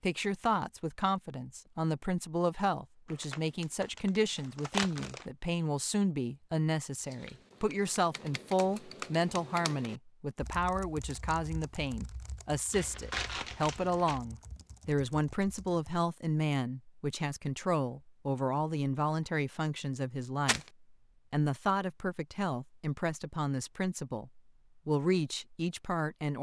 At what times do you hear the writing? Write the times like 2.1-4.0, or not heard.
not heard.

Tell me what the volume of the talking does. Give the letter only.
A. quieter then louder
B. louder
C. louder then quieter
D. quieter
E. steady
E.